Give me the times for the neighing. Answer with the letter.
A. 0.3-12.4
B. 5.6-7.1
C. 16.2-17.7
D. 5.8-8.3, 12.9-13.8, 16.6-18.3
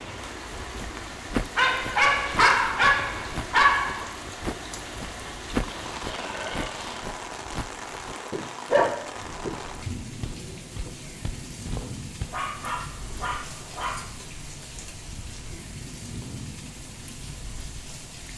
B.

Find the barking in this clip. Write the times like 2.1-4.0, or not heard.
1.6-4.1, 8.7-9.6, 12.3-14.1.